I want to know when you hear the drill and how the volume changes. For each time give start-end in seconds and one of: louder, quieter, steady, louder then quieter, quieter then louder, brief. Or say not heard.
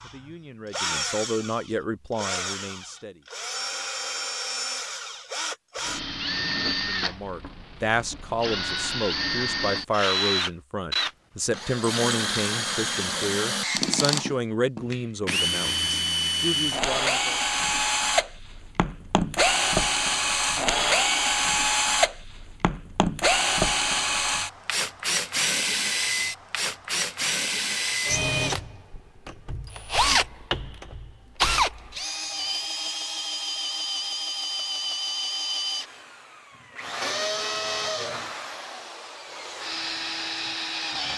0.0-41.1 louder then quieter.